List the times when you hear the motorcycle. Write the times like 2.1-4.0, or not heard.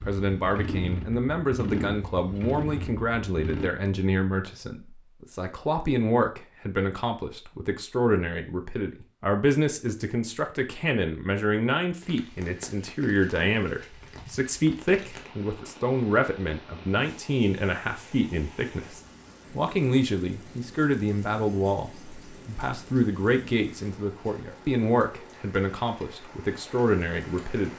0.0-3.7.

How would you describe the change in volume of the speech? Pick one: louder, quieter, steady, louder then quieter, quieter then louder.
steady.